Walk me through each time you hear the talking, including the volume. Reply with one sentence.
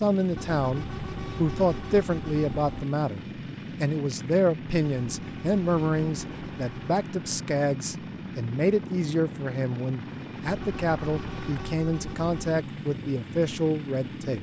You can hear the talking from 0.0 to 14.3 s, at a steady volume.